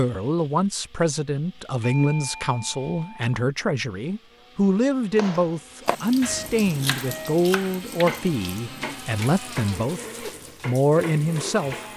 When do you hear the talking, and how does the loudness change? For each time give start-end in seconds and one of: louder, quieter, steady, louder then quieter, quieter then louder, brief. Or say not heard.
0.0-11.8 steady.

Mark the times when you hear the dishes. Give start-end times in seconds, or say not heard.
not heard.